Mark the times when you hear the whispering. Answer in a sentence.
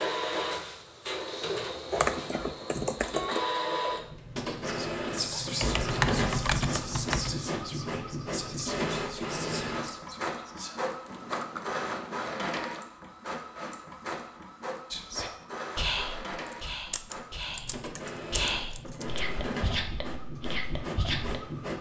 The whispering can be heard from 4.3 to 10.8 s and from 14.9 to 21.4 s.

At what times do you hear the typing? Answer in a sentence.
You can hear the typing from 1.9 to 3.5 s, from 5.5 to 7.3 s, from 11.1 to 12.8 s and from 16.4 to 19.2 s.